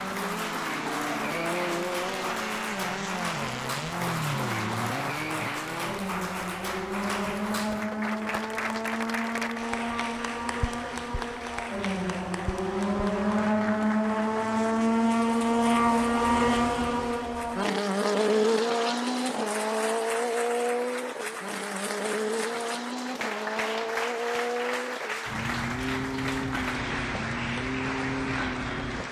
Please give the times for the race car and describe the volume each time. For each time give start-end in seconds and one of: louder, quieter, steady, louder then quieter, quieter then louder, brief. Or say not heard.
0.0-29.0 louder then quieter.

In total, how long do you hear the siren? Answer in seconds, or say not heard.
not heard.